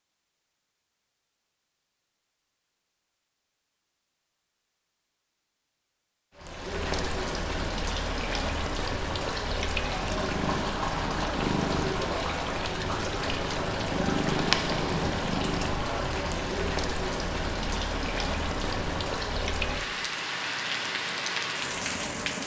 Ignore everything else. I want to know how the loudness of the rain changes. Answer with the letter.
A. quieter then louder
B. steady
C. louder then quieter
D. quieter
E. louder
B.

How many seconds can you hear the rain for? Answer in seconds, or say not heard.
16 s.